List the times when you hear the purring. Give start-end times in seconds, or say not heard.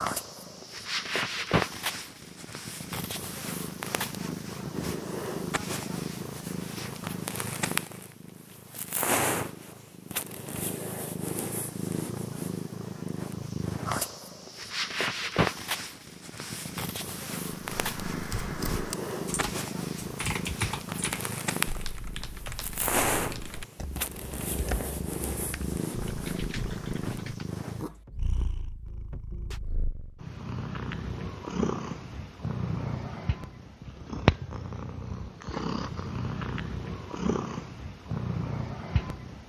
0.0-39.4.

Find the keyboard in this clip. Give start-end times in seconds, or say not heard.
17.8-27.5.